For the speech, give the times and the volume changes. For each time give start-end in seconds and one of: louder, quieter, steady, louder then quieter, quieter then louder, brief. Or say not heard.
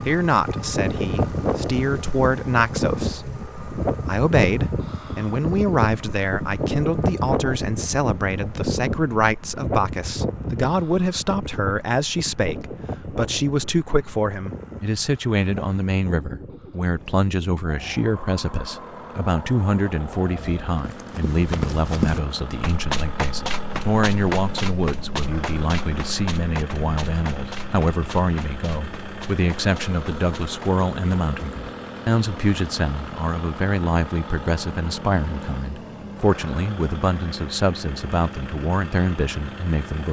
0.0-40.0 steady.